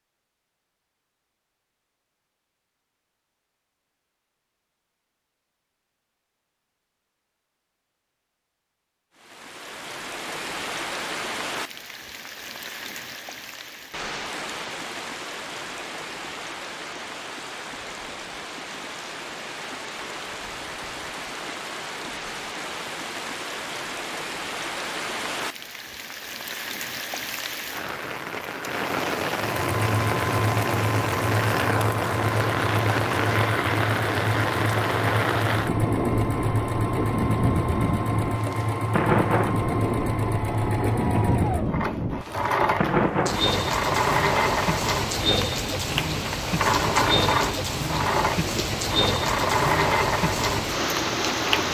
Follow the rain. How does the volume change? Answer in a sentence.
The loudness of the rain goes up.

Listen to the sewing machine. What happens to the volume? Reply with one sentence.
The loudness of the sewing machine stays about the same.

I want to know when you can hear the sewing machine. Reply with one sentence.
You can hear the sewing machine from 29.4 to 51.7 s.